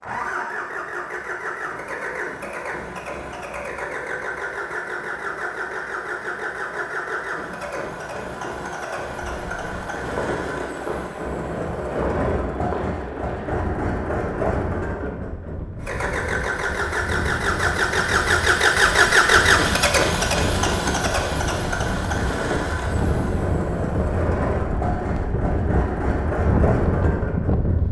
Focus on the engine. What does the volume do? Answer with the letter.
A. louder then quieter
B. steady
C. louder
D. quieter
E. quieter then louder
A.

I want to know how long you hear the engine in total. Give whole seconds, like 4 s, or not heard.
28 s.